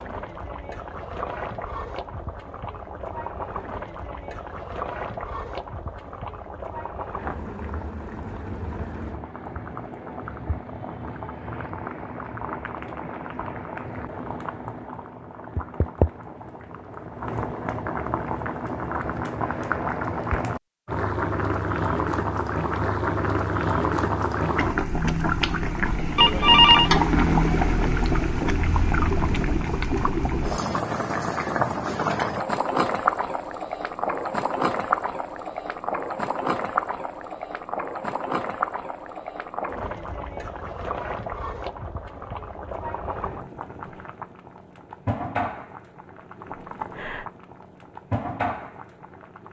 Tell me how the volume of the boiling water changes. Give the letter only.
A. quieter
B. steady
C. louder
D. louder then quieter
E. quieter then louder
D.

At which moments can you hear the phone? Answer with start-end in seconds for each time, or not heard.
26.1-26.9.